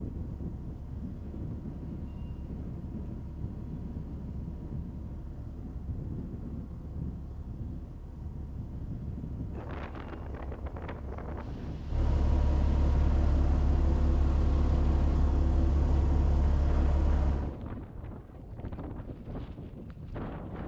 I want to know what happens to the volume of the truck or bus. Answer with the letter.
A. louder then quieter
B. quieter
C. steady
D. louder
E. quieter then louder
D.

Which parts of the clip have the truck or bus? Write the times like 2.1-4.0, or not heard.
0.0-17.5.